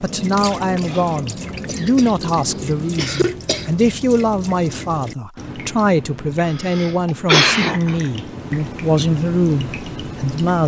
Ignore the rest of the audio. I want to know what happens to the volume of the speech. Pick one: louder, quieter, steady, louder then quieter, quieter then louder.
steady.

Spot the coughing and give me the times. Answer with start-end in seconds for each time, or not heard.
1.6-2.1, 3.0-3.6, 6.5-8.0.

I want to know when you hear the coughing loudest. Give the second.
7 s.